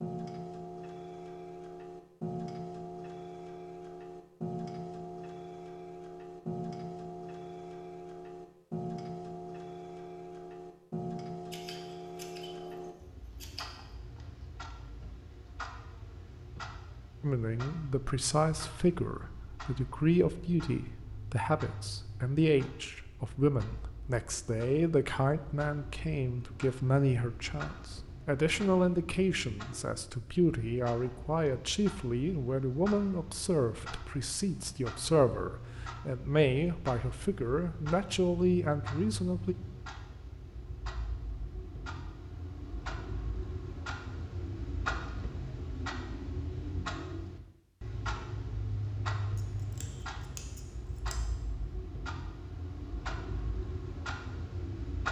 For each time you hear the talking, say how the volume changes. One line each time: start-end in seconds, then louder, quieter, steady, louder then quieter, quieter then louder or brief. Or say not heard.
17.2-39.5 steady.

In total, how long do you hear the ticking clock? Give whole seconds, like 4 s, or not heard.
55 s.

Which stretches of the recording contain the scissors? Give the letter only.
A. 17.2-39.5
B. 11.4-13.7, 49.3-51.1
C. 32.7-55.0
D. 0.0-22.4
B.